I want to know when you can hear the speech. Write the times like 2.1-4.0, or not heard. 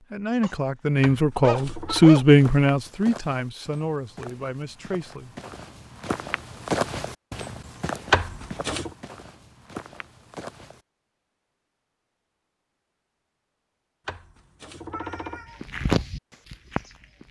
0.0-5.3.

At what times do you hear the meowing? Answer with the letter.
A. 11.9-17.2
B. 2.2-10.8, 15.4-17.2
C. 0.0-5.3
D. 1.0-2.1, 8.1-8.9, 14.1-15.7
D.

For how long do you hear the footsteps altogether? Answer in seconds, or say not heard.
10 s.